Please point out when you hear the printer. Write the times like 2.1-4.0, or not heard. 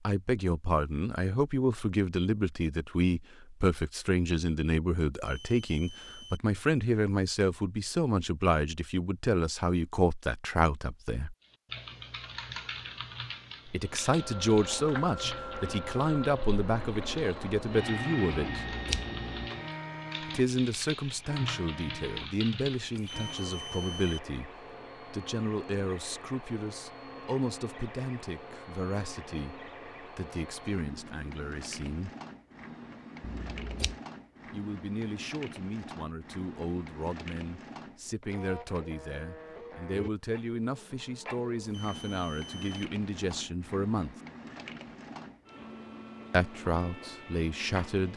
13.8-48.1.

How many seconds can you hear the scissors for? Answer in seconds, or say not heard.
2 s.